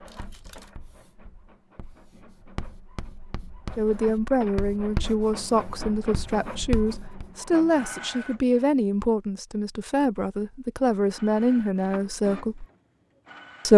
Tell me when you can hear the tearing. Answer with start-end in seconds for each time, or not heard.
0.1-0.8.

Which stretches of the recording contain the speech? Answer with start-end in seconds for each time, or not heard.
3.8-12.7.